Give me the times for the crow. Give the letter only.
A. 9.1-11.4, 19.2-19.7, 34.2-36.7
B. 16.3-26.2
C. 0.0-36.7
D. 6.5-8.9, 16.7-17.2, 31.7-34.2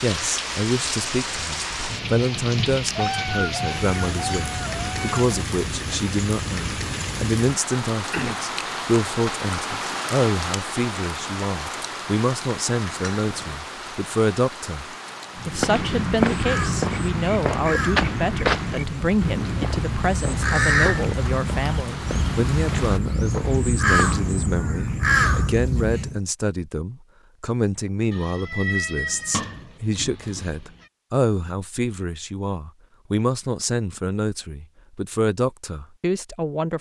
B.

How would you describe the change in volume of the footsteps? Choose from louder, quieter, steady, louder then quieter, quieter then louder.
quieter.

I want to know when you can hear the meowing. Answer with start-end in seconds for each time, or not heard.
3.0-5.3, 13.1-13.6, 28.1-30.6.